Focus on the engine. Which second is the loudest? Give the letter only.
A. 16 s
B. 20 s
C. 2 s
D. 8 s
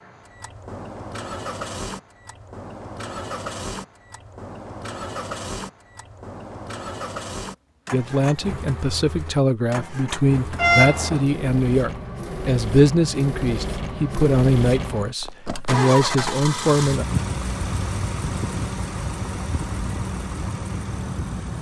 A.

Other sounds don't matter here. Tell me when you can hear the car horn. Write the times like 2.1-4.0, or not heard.
10.6-11.2.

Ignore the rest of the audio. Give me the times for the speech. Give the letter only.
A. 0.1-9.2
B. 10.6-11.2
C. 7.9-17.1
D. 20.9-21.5
C.